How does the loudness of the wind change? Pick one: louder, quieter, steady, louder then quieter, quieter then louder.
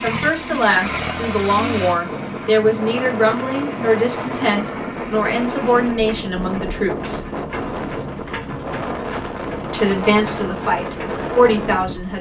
steady.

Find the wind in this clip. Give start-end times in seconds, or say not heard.
2.0-12.1.